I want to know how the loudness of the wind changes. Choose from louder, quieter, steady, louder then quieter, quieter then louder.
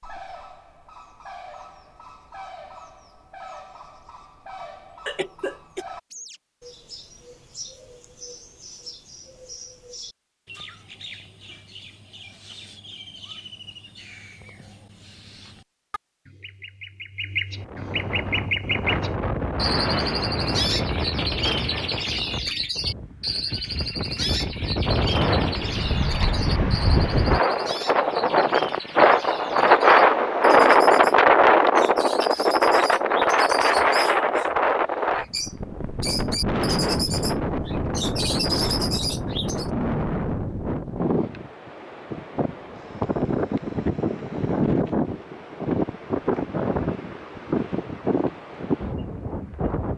louder then quieter.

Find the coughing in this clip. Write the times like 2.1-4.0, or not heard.
5.0-5.8.